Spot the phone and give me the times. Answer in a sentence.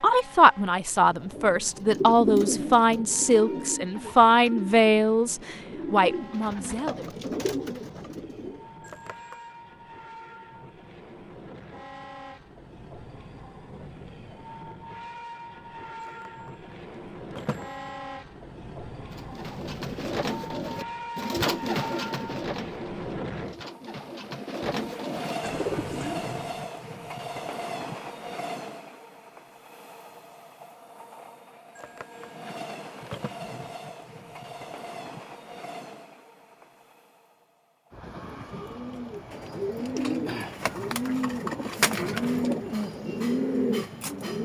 You can hear the phone from 8.8 to 9.5 s, from 16.0 to 16.5 s, from 17.3 to 17.9 s and from 31.8 to 33.3 s.